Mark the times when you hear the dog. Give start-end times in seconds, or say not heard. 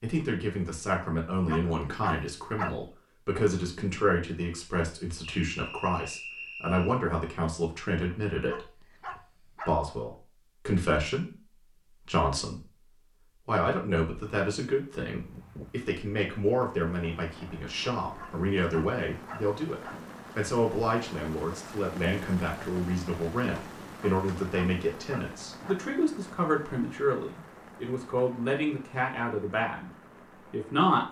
1.4-2.8, 8.4-9.8, 18.1-20.1, 24.0-25.9.